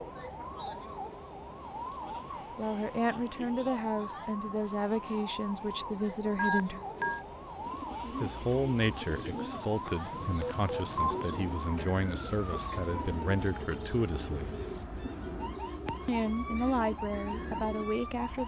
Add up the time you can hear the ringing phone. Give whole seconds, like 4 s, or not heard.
2 s.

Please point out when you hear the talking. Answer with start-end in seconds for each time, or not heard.
2.5-6.8, 8.2-14.6, 16.1-18.4.